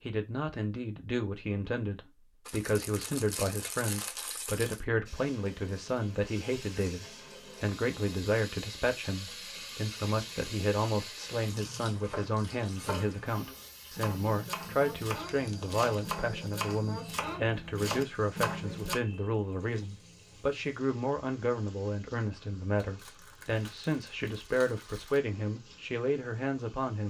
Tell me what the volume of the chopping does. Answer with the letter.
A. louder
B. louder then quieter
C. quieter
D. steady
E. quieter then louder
A.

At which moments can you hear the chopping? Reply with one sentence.
The chopping can be heard from 11.9 to 18.9 s.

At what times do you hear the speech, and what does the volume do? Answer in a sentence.
The speech can be heard from 0.0 to 27.0 s, at a steady volume.